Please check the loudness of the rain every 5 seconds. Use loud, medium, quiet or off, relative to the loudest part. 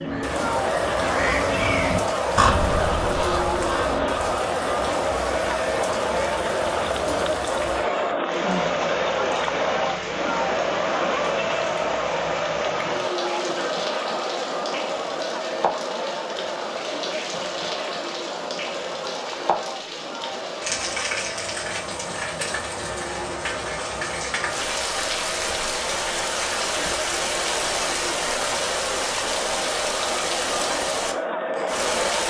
medium, medium, medium, medium, loud, loud, loud.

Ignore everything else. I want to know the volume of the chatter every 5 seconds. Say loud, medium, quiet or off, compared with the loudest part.
loud, loud, loud, medium, medium, medium, loud.